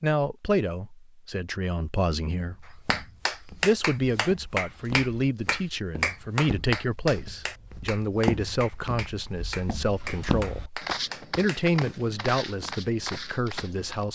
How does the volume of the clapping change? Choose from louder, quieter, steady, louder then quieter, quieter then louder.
quieter.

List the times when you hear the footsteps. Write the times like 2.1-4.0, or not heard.
2.5-14.1.